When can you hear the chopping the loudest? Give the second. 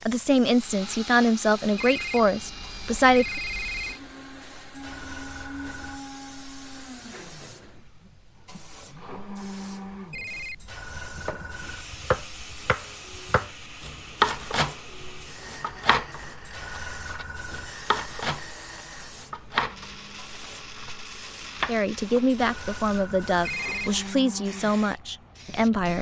14 s.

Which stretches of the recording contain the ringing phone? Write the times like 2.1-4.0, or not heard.
1.8-4.0, 10.1-10.8, 23.4-24.1.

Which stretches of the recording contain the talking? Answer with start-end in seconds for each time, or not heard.
0.0-3.4, 21.6-25.9.